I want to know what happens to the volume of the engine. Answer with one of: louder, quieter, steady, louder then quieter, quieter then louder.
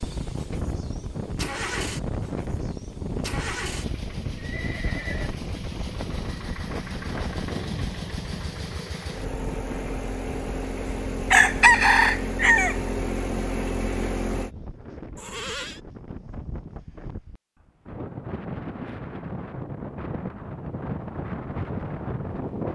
louder.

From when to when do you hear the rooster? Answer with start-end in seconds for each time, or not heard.
10.8-12.8.